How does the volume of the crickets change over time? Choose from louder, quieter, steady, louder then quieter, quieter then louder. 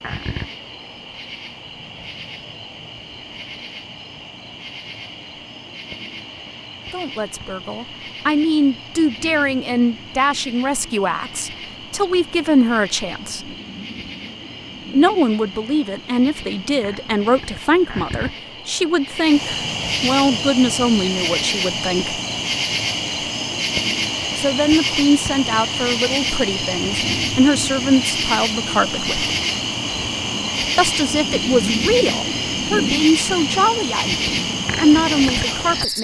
louder.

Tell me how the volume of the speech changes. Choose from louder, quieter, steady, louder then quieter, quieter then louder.
steady.